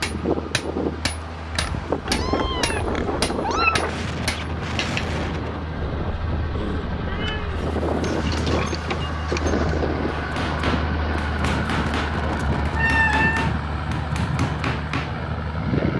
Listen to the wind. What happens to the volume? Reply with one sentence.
The volume of the wind stays about the same.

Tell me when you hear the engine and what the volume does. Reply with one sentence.
You can hear the engine from 0.0 to 15.9 s, getting louder.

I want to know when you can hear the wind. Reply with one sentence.
The wind can be heard from 0.0 to 15.9 s.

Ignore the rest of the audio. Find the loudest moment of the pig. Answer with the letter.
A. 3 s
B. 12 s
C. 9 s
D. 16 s
C.